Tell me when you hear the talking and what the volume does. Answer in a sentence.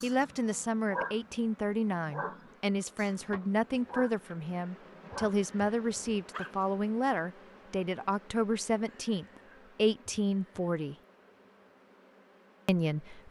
You can hear the talking from 0.0 to 10.9 s, at a steady volume; and briefly from 12.7 to 13.2 s.